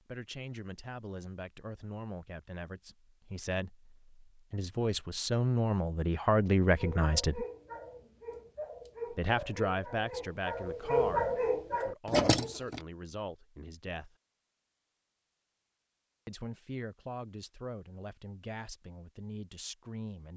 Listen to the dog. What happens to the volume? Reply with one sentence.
The volume of the dog goes up.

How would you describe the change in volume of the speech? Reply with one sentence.
The loudness of the speech goes up, then down.